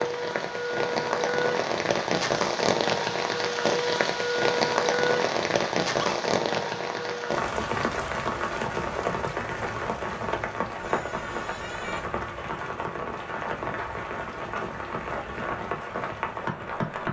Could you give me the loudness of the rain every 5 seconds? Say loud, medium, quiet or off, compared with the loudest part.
loud, loud, medium, medium.